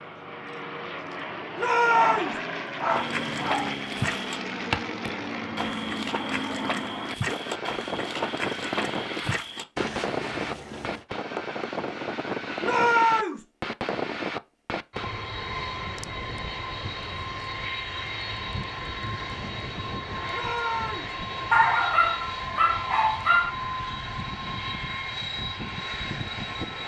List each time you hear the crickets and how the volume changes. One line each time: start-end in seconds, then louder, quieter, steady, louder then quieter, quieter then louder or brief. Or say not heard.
not heard.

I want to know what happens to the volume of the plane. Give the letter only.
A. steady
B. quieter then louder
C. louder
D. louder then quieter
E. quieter
A.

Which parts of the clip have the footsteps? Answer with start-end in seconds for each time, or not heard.
2.9-11.1.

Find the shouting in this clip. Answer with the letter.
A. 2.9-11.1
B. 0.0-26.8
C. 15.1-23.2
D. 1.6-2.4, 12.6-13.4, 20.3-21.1
D.